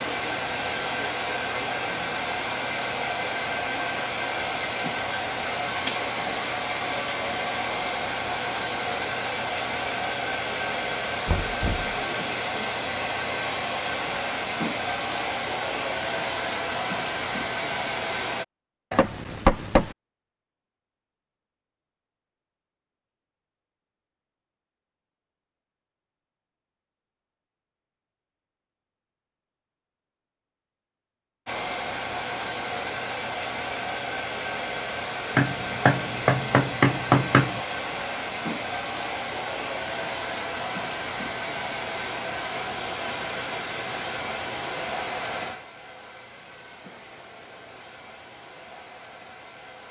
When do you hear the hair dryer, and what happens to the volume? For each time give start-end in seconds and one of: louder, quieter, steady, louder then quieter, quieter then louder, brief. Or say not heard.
0.0-18.4 steady
31.4-49.8 quieter.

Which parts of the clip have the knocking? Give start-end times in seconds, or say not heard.
11.2-11.9, 18.9-19.9, 35.4-37.6.